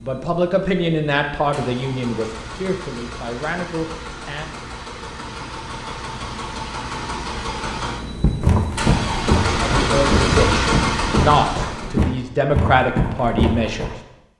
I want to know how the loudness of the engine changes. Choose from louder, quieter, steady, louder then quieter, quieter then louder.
louder.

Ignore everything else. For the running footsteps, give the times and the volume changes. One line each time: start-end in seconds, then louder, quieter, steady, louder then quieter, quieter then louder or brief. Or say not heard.
8.2-13.9 steady.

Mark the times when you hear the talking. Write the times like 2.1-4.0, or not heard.
0.0-4.5, 9.6-13.9.